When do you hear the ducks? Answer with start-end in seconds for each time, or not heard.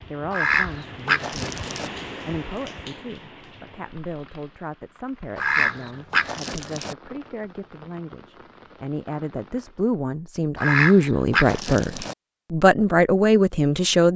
0.3-1.9, 5.3-7.0, 10.6-12.2.